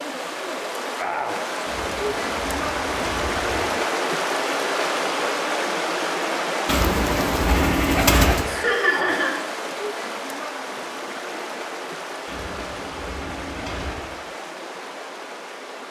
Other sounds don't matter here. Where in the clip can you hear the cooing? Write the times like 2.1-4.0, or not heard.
1.6-3.6, 6.7-8.5, 12.2-14.1.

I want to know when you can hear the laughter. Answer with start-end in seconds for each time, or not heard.
8.4-9.4.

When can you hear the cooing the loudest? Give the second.
8 s.